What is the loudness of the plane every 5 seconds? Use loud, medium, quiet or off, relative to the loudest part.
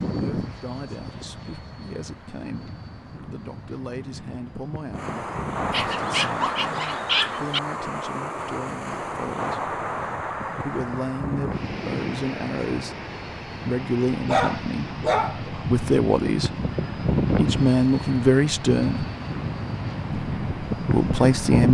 medium, quiet, medium, loud, loud.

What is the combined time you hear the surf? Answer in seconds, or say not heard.
17 s.